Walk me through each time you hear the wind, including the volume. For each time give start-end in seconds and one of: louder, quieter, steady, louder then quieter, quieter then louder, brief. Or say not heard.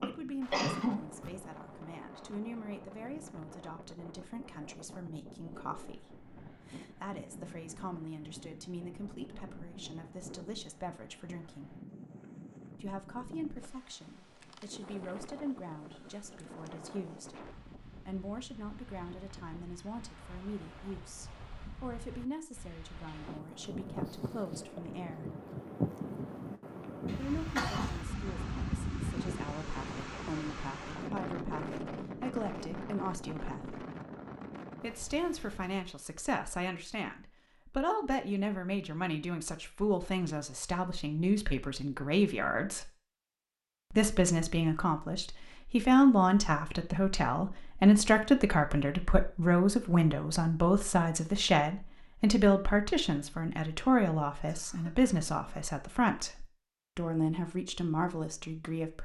0.0-35.9 louder.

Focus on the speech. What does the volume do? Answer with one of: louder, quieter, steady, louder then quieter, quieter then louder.
louder.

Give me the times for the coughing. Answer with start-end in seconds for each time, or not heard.
0.0-1.3, 27.1-28.0, 54.3-55.6.